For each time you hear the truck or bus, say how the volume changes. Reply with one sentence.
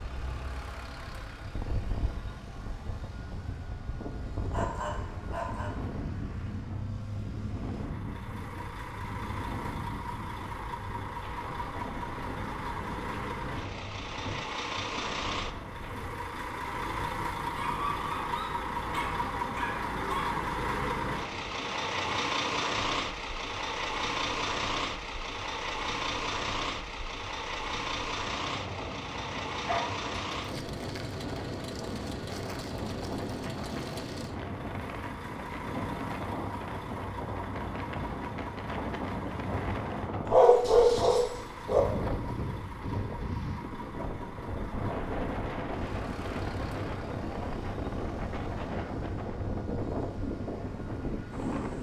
You can hear the truck or bus from 0.0 to 51.7 s, getting louder then quieter.